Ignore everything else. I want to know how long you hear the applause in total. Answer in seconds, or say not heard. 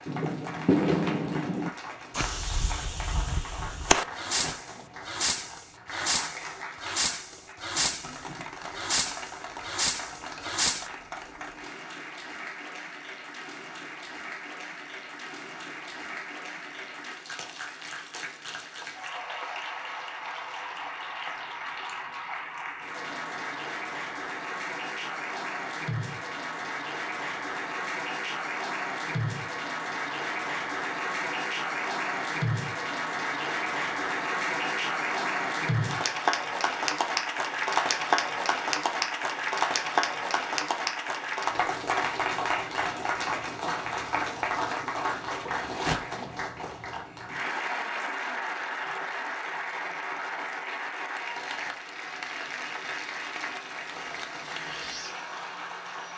56 s.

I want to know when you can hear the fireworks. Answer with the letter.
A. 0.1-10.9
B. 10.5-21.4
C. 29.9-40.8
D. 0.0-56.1
A.